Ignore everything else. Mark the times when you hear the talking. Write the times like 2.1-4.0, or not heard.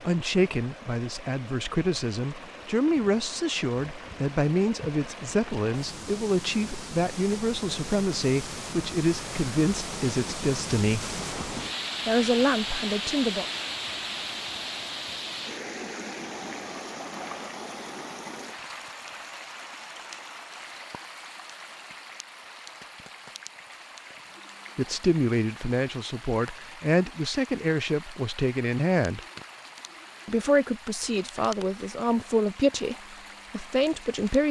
0.0-11.2, 12.1-13.4, 24.8-29.2, 30.2-34.4.